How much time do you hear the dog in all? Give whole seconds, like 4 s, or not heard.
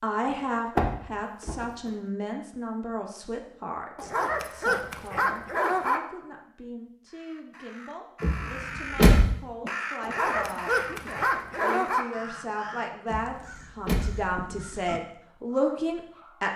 4 s.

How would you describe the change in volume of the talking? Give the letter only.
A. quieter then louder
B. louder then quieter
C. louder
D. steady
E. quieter
A.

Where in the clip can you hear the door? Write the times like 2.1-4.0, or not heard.
0.8-1.6, 8.2-9.2, 13.1-14.3.